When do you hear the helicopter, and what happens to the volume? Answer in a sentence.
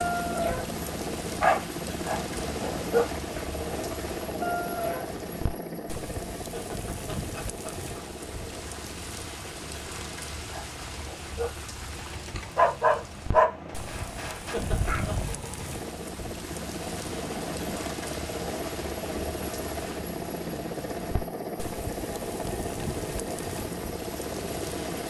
The helicopter can be heard from 0.0 to 25.0 s, getting quieter then louder.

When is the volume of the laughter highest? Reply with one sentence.
The volume of the laughter peaks at 15 seconds.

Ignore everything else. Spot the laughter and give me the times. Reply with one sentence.
You can hear the laughter from 6.5 to 8.1 s and from 14.5 to 15.2 s.